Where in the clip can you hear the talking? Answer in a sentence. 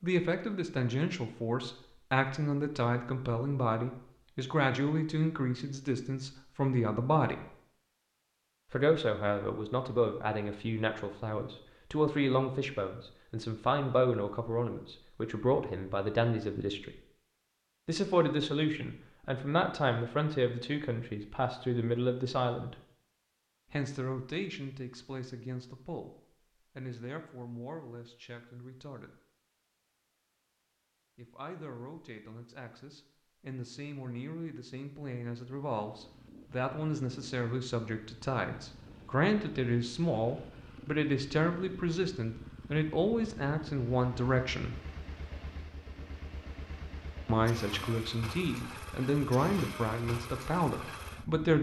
You can hear the talking from 0.0 to 7.5 s, from 8.7 to 17.0 s, from 17.9 to 22.8 s, from 23.7 to 29.2 s, from 31.1 to 44.8 s and from 47.2 to 51.5 s.